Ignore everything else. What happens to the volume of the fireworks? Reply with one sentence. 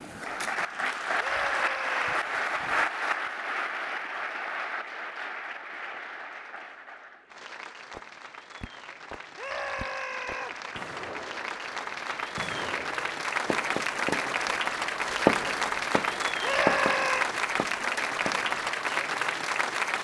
The loudness of the fireworks goes up, then down.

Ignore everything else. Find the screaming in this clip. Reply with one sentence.
The screaming can be heard from 1.1 to 2.2 s, from 9.3 to 10.6 s and from 16.4 to 17.3 s.